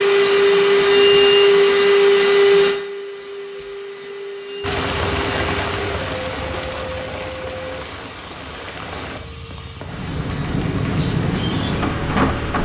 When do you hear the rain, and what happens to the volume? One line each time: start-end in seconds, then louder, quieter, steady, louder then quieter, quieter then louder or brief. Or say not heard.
4.6-12.6 quieter then louder.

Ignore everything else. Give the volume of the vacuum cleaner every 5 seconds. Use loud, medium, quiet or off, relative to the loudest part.
loud, quiet, quiet.